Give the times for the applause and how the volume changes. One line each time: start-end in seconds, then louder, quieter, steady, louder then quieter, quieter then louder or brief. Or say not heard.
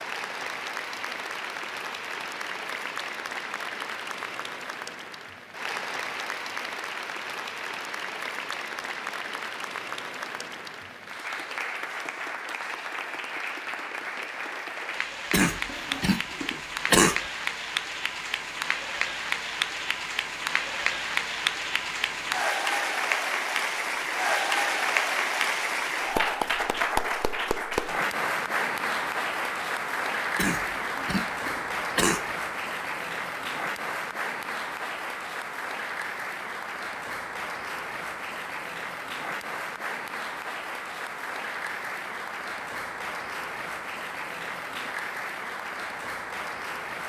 0.0-47.0 louder then quieter.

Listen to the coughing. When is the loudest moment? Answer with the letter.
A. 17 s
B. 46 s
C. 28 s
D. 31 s
A.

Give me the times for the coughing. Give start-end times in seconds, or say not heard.
15.3-17.2, 30.4-32.2.